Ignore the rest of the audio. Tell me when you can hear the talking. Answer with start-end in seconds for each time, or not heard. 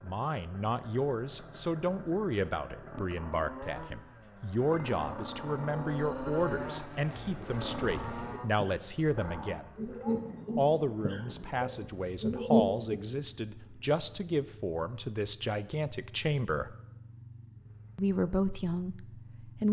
0.0-9.7, 10.6-16.8, 17.9-19.6.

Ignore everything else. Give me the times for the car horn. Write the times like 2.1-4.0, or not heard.
not heard.